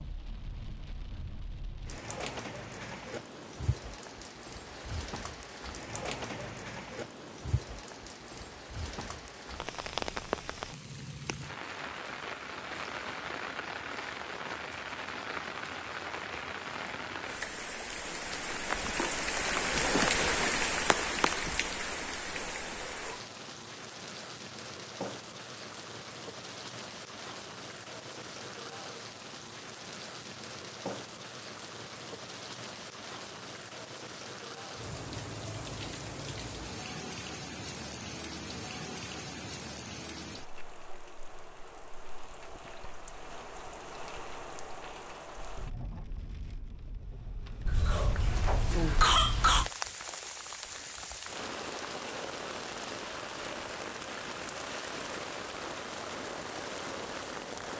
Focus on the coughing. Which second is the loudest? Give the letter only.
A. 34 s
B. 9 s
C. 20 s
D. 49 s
D.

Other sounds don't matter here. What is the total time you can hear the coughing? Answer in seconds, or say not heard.
2 s.